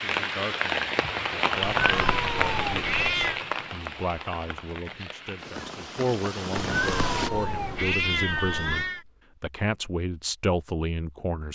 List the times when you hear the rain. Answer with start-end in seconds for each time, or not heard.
0.0-7.3.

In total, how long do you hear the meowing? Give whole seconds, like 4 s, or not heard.
4 s.